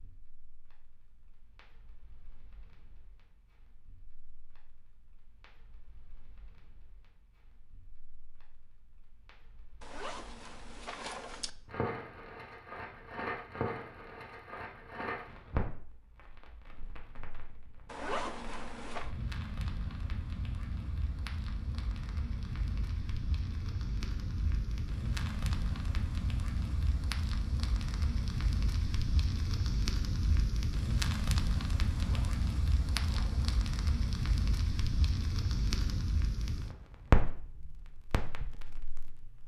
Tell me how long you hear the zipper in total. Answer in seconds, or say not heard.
5 s.